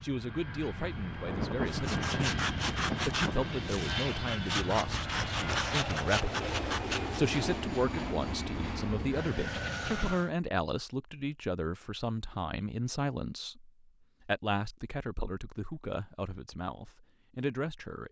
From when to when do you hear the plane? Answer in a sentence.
You can hear the plane from 0.0 to 10.3 s.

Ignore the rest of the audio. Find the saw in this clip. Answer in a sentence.
You can hear the saw from 1.6 to 7.4 s.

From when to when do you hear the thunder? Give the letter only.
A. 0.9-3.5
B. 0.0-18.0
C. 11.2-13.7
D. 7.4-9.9
A.